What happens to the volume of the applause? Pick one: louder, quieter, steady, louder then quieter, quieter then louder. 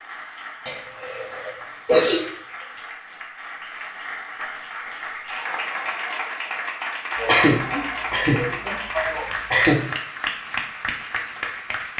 louder.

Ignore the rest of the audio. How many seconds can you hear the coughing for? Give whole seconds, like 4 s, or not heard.
4 s.